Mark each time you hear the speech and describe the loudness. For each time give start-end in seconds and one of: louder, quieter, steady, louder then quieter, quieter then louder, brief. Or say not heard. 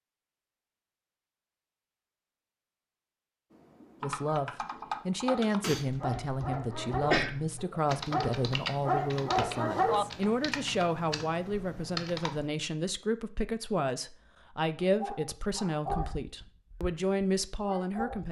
4.0-18.2 steady.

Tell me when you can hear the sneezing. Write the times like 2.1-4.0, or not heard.
7.0-7.8.